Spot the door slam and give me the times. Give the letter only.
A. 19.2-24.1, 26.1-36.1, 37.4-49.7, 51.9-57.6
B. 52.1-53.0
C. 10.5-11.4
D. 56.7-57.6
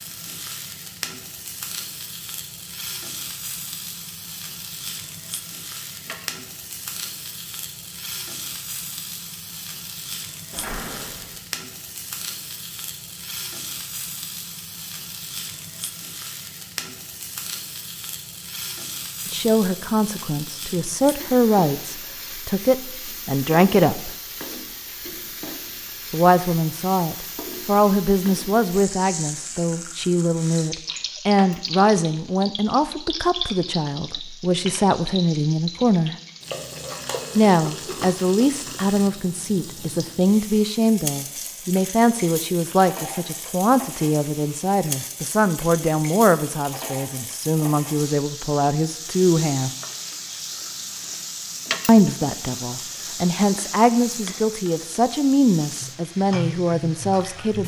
C.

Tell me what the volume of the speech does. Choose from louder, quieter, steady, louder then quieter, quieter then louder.
steady.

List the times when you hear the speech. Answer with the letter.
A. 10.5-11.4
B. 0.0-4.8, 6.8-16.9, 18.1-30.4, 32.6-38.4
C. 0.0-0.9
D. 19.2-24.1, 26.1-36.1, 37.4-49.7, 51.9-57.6
D.